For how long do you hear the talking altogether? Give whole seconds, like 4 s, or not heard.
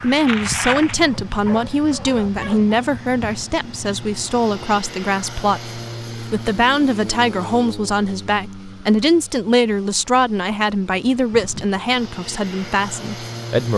14 s.